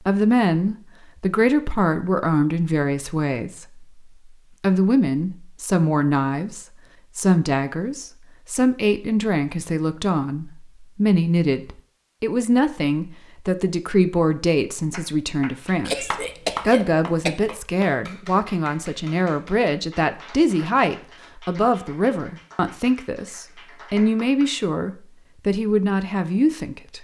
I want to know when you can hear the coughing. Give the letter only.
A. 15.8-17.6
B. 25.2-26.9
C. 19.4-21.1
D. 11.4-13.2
A.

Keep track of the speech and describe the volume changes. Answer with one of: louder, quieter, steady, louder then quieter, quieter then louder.
steady.